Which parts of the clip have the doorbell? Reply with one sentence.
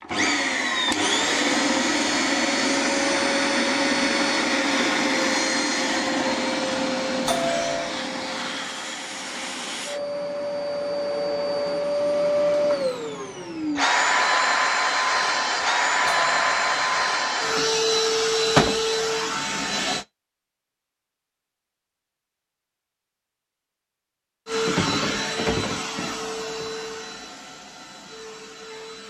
You can hear the doorbell from 7.2 to 8.0 s and from 16.1 to 17.1 s.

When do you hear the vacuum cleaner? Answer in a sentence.
The vacuum cleaner can be heard from 0.0 to 20.1 s and from 24.4 to 29.0 s.